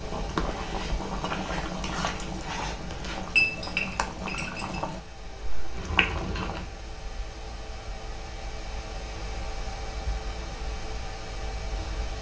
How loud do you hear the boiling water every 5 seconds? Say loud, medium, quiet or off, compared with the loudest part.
loud, loud, off.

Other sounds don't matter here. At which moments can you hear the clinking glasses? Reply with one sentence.
You can hear the clinking glasses from 3.3 to 4.8 s.